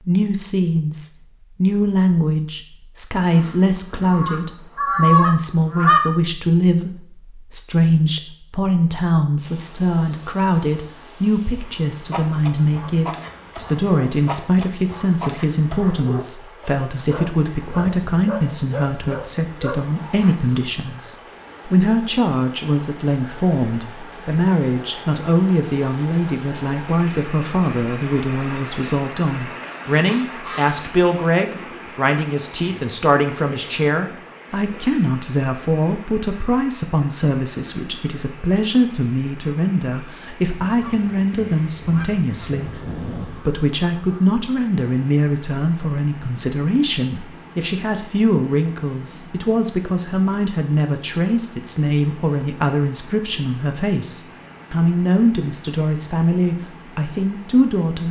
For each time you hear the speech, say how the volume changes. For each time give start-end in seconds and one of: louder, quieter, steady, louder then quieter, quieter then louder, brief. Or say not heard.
0.0-58.0 steady.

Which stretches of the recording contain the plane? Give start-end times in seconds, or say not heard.
not heard.